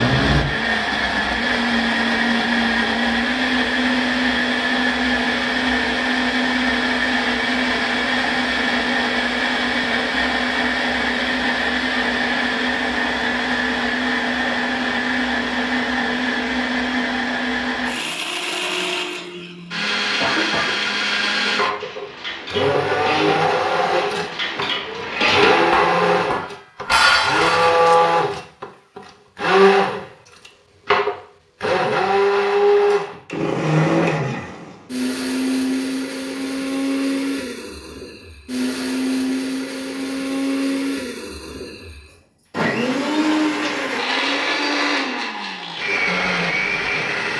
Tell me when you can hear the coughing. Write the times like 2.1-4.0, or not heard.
20.2-20.8.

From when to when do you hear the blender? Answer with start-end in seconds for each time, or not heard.
0.0-47.3.